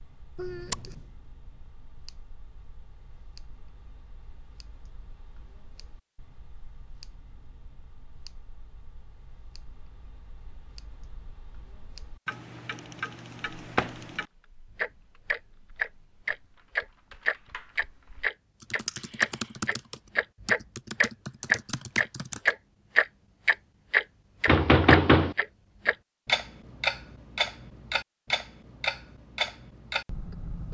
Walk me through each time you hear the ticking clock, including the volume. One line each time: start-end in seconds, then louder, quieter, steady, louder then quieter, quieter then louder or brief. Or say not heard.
0.0-30.6 louder then quieter.